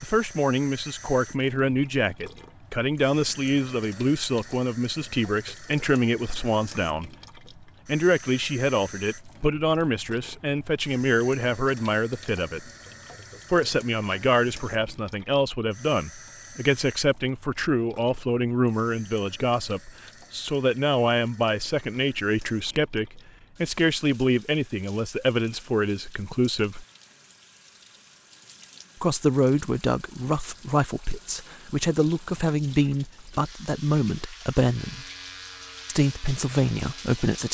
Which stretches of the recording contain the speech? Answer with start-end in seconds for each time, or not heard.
0.0-7.1, 7.8-12.7, 13.5-26.9, 29.0-35.0, 35.9-37.4.